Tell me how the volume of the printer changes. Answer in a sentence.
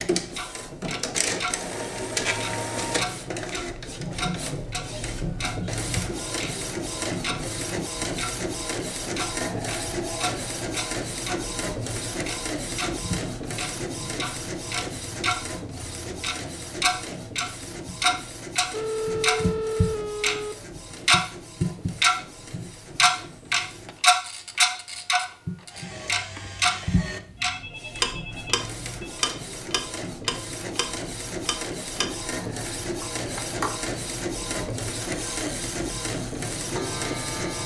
The loudness of the printer goes down, then up.